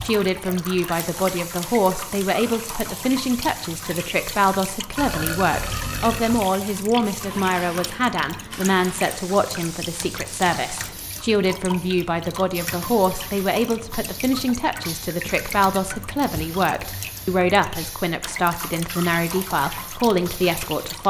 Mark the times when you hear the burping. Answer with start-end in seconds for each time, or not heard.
5.0-6.5.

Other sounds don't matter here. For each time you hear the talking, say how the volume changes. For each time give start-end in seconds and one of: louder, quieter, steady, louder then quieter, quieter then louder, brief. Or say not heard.
0.0-21.0 steady.